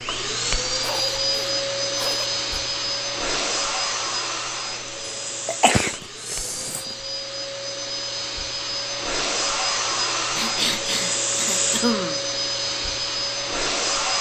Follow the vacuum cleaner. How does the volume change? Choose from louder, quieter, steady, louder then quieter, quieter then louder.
quieter then louder.